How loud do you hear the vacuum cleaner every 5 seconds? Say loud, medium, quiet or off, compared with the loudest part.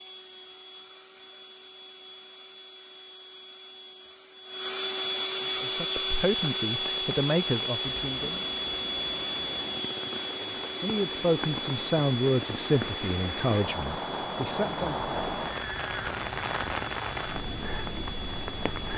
medium, loud, medium, medium.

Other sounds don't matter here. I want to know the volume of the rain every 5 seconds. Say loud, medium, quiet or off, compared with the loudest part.
off, medium, loud, loud.